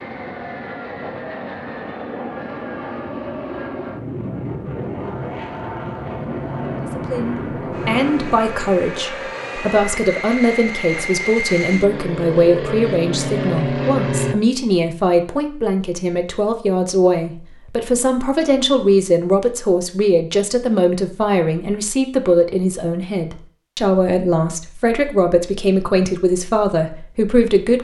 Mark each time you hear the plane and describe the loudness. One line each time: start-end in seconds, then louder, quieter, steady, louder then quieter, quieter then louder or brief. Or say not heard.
0.0-14.3 louder.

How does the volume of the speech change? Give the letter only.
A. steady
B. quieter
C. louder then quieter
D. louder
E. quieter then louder
A.